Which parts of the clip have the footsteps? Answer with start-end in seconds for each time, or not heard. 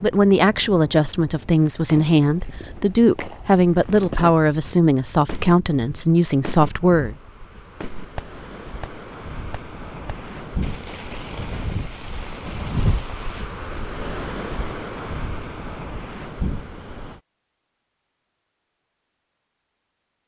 not heard.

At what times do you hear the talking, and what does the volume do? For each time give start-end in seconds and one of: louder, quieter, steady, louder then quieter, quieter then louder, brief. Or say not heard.
0.0-7.2 steady.